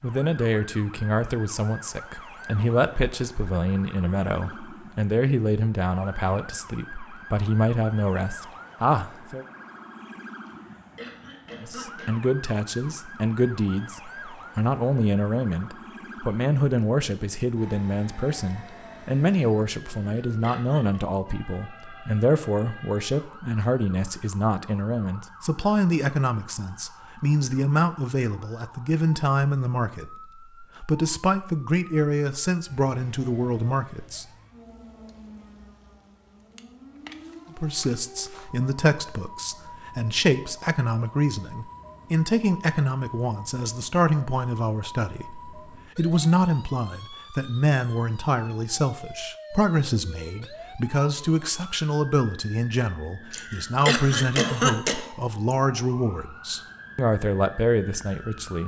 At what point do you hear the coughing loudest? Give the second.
55 s.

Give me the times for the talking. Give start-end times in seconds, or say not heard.
0.0-9.4, 11.6-34.2, 37.5-58.6.